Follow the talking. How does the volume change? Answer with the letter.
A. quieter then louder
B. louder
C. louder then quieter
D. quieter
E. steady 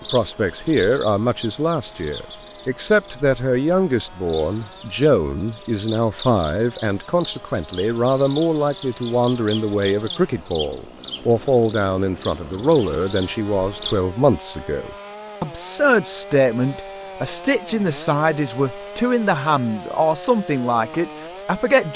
E.